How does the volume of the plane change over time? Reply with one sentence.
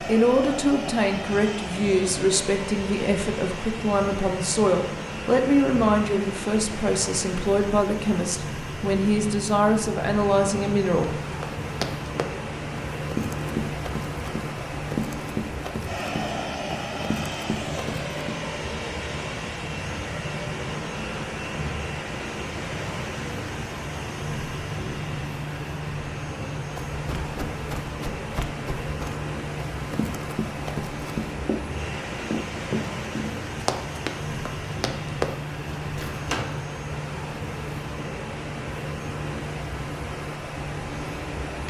The volume of the plane stays about the same.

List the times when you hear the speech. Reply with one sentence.
The speech can be heard from 0.1 to 11.1 s.